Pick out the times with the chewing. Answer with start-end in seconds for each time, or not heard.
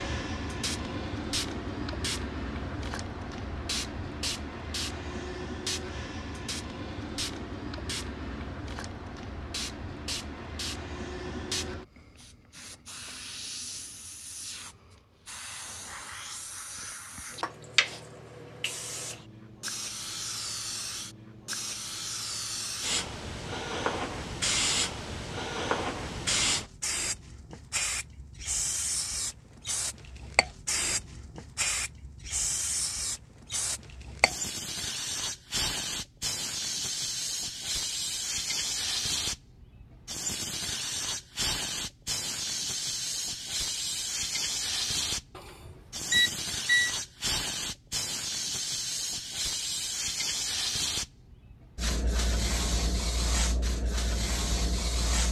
not heard.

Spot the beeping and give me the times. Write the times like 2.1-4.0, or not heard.
45.4-47.0.